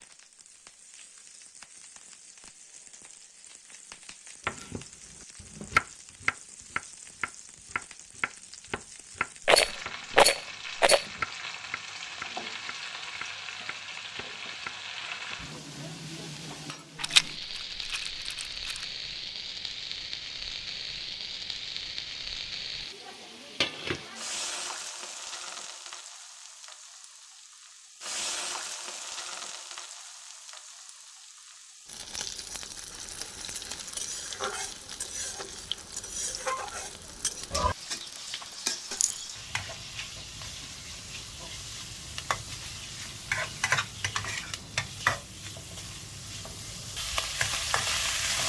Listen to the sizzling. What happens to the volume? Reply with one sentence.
The loudness of the sizzling goes up.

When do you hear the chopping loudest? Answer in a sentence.
The volume of the chopping peaks at 6 seconds.